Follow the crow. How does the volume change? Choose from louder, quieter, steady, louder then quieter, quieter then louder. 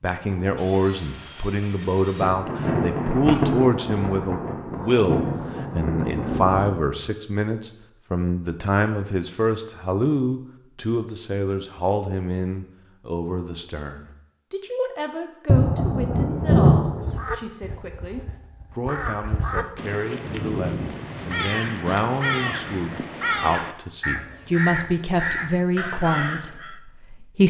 louder.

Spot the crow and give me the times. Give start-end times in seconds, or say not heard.
16.9-26.8.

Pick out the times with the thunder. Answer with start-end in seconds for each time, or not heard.
2.2-6.8, 15.4-17.2.